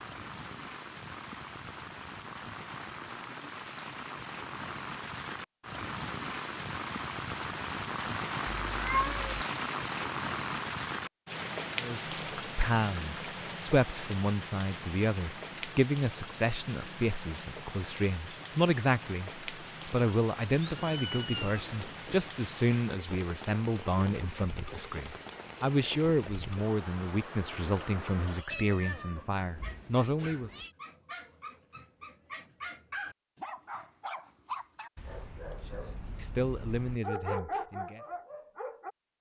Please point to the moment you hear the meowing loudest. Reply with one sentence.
The loudest moment of the meowing is at 9 seconds.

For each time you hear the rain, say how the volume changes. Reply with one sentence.
The rain can be heard from 0.0 to 28.4 s, getting louder then quieter.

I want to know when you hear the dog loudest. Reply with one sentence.
The volume of the dog peaks at 37 seconds.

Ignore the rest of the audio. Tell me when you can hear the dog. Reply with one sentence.
The dog can be heard from 29.4 to 38.9 s.